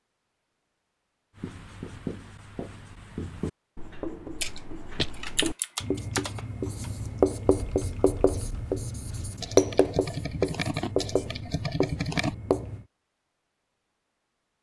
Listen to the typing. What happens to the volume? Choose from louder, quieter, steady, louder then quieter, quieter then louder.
quieter then louder.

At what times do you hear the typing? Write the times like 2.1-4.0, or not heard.
4.4-12.3.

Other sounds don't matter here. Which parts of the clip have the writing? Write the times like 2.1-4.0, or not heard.
1.4-12.8.